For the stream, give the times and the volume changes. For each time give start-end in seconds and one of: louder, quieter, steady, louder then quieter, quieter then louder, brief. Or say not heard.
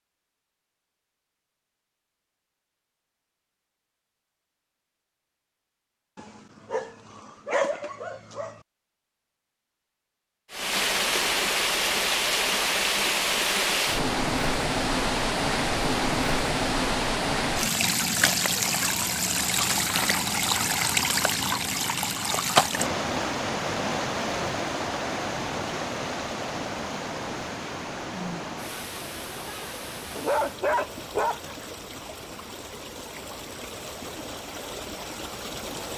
10.5-35.9 quieter.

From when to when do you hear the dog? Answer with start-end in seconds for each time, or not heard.
6.2-8.6, 30.1-31.6.